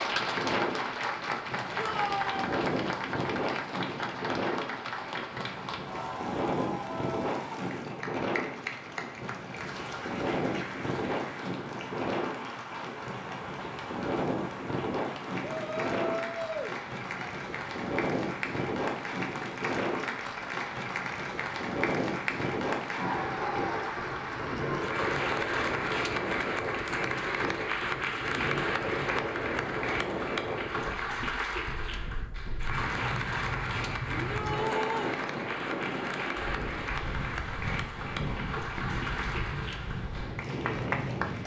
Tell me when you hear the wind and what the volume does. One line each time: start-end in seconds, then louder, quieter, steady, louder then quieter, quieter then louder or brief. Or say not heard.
0.0-41.4 steady.